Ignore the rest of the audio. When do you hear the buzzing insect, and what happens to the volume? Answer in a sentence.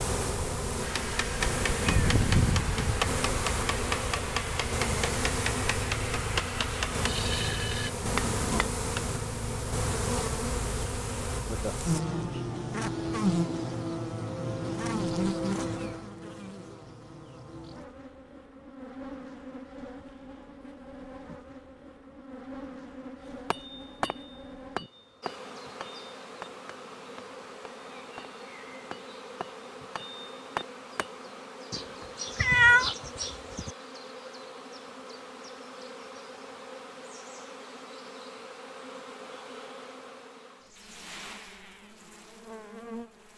The buzzing insect can be heard from 0.0 to 43.3 s, getting quieter.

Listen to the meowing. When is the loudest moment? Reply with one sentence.
The volume of the meowing peaks at 33 seconds.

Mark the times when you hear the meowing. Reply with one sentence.
The meowing can be heard from 1.9 to 3.2 s and from 31.7 to 33.7 s.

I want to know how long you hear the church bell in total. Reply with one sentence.
The church bell can't be heard in this clip.